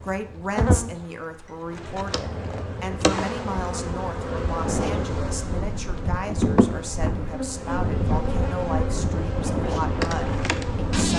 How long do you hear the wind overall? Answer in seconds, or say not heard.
7 s.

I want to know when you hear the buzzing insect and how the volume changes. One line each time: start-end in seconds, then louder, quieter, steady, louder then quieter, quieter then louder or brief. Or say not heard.
0.0-11.1 steady.